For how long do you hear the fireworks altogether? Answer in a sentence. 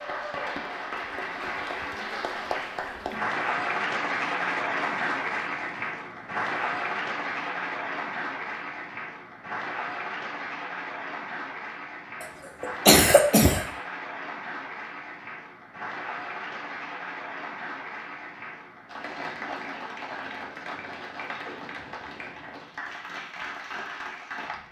The fireworks can't be heard in this clip.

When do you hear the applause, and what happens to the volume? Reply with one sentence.
The applause can be heard from 0.0 to 24.6 s, getting quieter.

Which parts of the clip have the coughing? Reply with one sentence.
The coughing can be heard from 12.2 to 13.7 s.